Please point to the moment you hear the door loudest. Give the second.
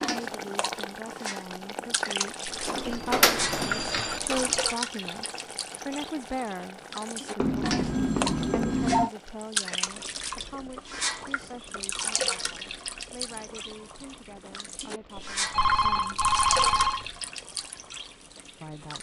3 s.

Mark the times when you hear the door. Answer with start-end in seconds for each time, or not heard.
2.5-4.7.